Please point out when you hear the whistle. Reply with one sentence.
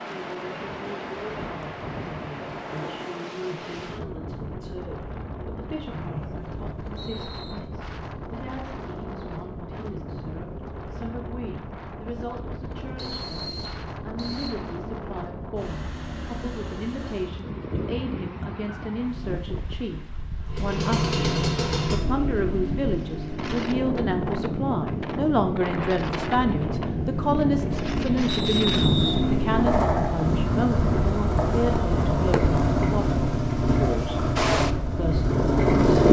You can hear the whistle from 5.9 to 7.5 s, from 12.9 to 14.5 s and from 28.2 to 29.1 s.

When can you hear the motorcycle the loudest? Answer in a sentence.
The volume of the motorcycle peaks at 36 seconds.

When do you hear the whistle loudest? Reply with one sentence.
The loudest moment of the whistle is at 29 seconds.